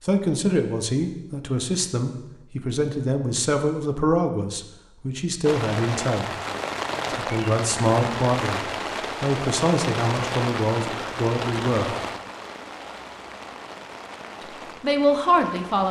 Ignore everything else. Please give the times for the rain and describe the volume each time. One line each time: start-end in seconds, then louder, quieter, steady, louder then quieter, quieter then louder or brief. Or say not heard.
5.4-15.8 quieter.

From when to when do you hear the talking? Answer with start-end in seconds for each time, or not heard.
0.0-6.3, 7.2-11.9, 14.8-15.8.